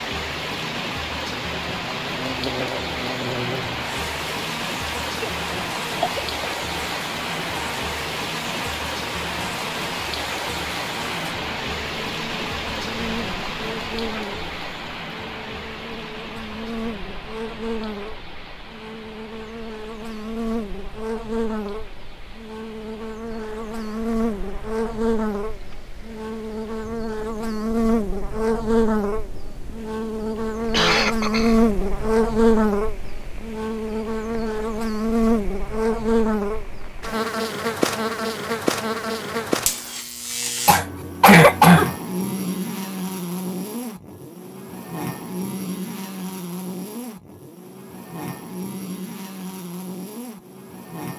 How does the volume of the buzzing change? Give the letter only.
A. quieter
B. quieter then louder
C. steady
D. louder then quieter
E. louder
D.